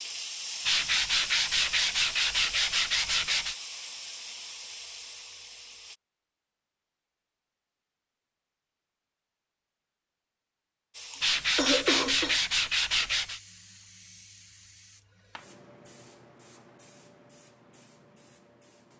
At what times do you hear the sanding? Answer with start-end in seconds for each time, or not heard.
0.7-3.5, 11.2-13.4.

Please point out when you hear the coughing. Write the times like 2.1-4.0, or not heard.
11.1-12.4.